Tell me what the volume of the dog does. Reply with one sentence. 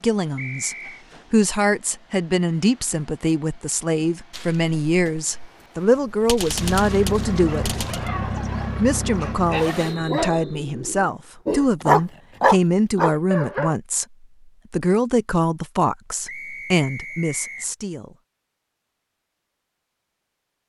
The loudness of the dog goes up.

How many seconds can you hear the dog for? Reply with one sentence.
The dog can be heard for 6 seconds in total.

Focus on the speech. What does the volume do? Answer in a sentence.
The volume of the speech stays about the same.